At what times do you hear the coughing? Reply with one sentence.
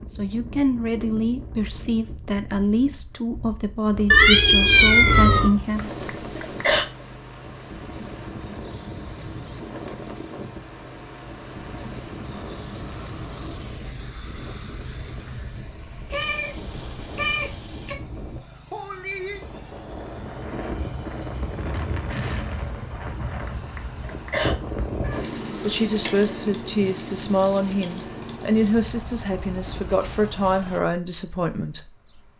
The coughing can be heard from 5.8 to 6.8 s and from 23.4 to 24.6 s.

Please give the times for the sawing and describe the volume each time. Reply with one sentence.
You can't hear the sawing here.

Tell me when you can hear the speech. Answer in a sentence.
The speech can be heard from 0.1 to 5.9 s and from 25.6 to 31.8 s.